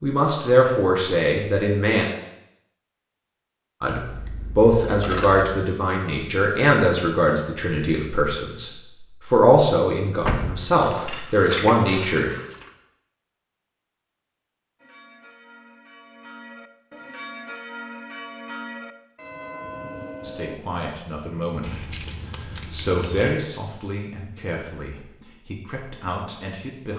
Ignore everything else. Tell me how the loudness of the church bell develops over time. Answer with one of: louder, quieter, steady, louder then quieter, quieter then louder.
louder.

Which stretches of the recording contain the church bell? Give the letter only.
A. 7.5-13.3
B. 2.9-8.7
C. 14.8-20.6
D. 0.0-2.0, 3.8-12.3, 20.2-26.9
C.